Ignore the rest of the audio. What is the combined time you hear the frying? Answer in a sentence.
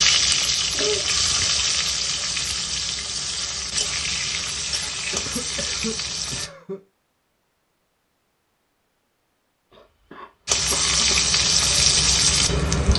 You can hear the frying for 9 seconds altogether.